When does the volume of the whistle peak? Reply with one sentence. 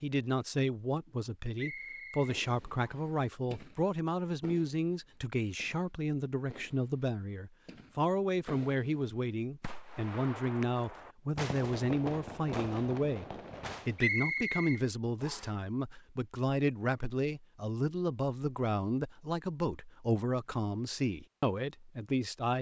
The volume of the whistle peaks at 14 seconds.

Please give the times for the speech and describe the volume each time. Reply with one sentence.
You can hear the speech from 0.0 to 22.5 s, at a steady volume.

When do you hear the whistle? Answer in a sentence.
The whistle can be heard from 1.6 to 3.1 s and from 13.9 to 15.5 s.